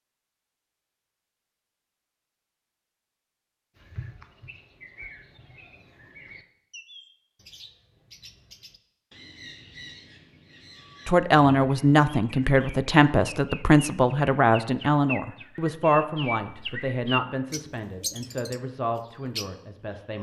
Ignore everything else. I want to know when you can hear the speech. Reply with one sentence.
The speech can be heard from 11.1 to 20.1 s.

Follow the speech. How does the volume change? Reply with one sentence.
The volume of the speech goes down.